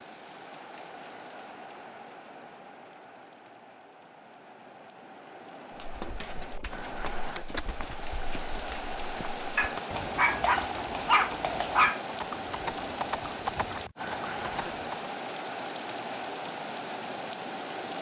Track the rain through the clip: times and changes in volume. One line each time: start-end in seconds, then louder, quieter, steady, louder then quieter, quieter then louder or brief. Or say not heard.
0.0-17.9 louder.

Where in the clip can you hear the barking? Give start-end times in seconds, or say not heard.
9.6-12.0.